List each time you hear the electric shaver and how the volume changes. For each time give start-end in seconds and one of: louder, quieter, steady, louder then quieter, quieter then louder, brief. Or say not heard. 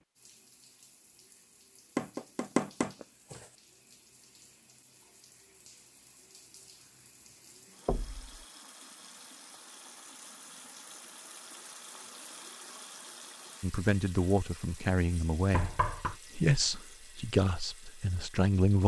not heard.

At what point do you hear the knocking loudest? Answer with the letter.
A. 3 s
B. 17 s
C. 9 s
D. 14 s
A.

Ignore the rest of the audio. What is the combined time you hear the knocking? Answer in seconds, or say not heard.
3 s.